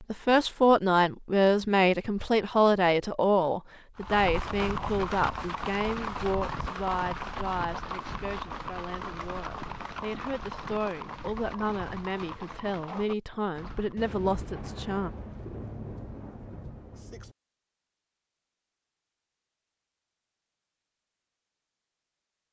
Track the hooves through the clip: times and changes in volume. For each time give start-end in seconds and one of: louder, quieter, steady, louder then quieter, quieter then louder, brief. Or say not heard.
4.0-14.0 quieter.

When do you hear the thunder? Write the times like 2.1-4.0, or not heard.
13.9-17.4.